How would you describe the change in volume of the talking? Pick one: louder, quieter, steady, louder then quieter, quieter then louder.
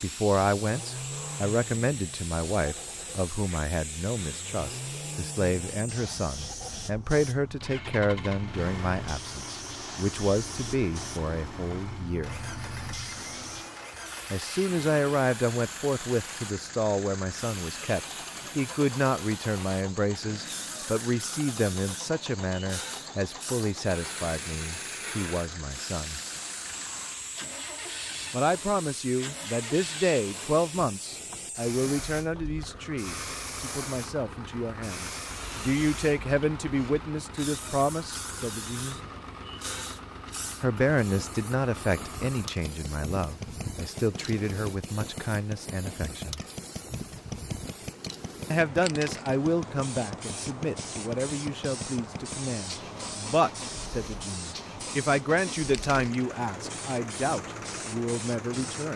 steady.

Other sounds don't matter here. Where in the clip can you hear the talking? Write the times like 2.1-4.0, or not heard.
0.0-12.4, 14.3-26.2, 28.3-39.0, 40.6-46.4, 48.5-58.9.